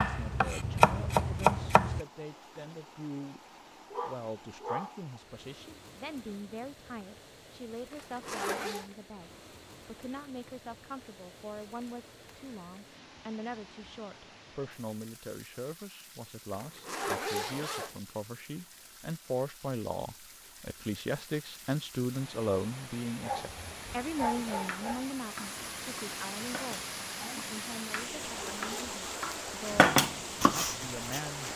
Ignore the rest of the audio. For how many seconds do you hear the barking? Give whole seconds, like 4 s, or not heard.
3 s.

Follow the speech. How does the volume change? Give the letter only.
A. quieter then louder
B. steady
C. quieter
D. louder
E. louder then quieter
E.